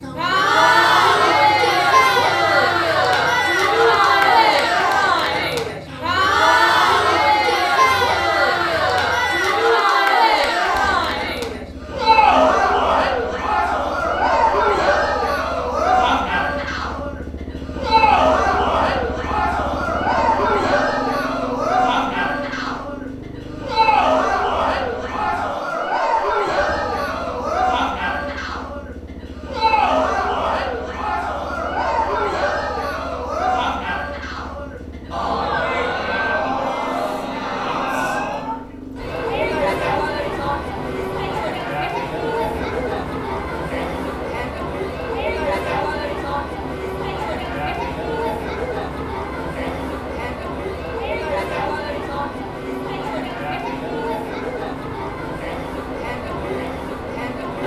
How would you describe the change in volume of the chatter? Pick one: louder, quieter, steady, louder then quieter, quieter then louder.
quieter.